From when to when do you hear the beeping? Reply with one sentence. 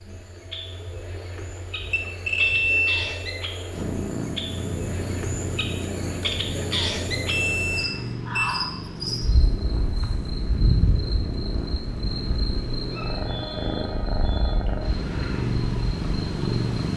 You can hear the beeping from 1.8 to 3.0 s, from 7.2 to 8.6 s and from 13.2 to 14.5 s.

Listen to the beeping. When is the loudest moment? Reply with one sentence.
The volume of the beeping peaks at 3 seconds.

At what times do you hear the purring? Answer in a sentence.
You can hear the purring from 3.7 to 16.9 s.